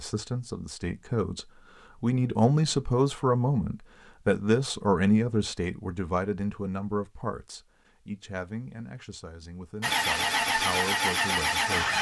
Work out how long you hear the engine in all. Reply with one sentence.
You can hear the engine for 2 seconds altogether.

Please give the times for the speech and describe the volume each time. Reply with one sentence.
The speech can be heard from 0.0 to 11.9 s, getting quieter.